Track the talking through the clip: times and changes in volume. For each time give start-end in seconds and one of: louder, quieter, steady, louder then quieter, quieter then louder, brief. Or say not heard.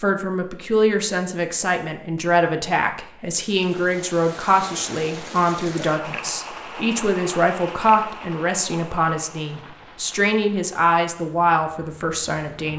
0.0-12.7 steady.